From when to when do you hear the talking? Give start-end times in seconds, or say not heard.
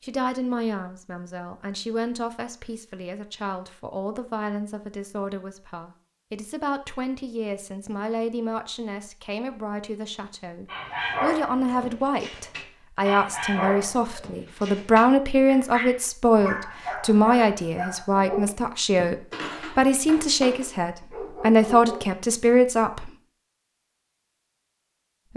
0.0-23.1.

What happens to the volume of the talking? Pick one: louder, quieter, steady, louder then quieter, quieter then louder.
louder.